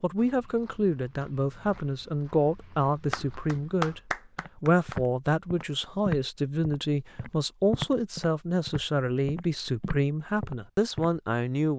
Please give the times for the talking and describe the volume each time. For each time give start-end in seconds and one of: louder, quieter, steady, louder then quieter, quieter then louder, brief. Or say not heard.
0.0-11.7 steady.